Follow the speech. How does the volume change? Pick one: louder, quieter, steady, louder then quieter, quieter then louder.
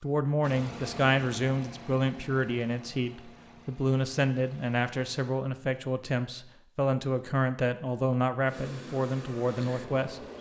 steady.